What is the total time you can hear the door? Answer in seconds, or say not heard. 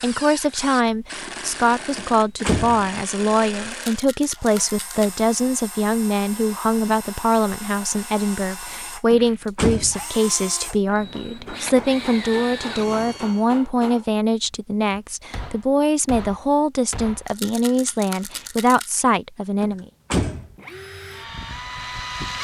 3 s.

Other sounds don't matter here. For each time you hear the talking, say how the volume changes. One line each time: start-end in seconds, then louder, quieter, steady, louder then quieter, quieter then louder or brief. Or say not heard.
0.0-19.9 steady.